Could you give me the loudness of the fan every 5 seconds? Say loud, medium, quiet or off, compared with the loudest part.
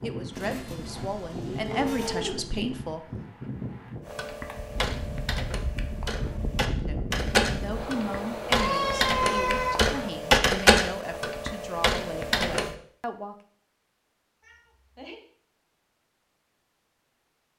loud, loud, off, off.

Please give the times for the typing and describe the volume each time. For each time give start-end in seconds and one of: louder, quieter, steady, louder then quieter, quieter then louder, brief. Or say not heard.
4.0-12.8 louder then quieter.